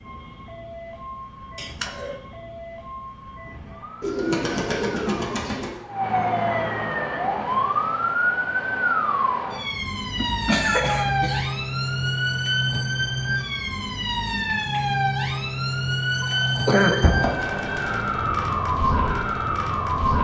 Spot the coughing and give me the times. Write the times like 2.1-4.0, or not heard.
1.6-2.1, 10.2-11.4, 16.1-17.2.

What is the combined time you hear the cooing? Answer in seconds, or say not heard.
3 s.